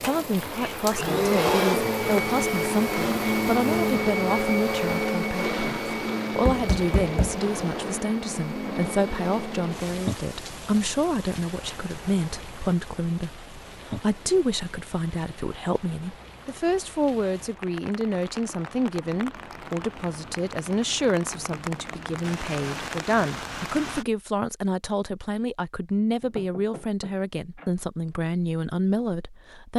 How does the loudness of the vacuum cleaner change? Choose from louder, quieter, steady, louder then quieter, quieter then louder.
quieter.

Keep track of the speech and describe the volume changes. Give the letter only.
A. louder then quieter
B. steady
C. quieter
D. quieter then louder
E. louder
B.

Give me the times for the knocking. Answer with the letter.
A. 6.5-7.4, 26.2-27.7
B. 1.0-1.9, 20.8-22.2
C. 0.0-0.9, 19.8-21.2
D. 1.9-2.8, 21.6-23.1
A.